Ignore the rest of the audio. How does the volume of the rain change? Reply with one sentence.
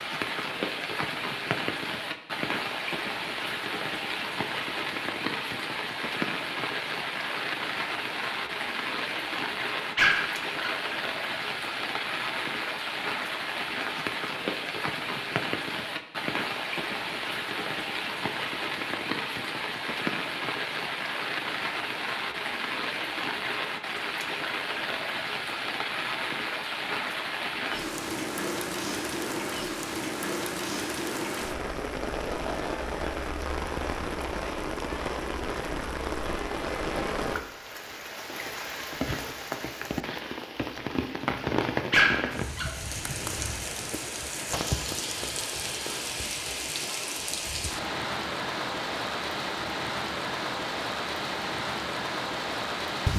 The volume of the rain stays about the same.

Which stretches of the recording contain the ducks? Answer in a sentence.
The ducks can't be heard in this clip.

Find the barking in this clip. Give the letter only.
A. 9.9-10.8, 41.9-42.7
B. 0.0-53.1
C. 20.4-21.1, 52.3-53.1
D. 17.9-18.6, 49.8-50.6
A.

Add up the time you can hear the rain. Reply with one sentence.
You can hear the rain for 53 seconds altogether.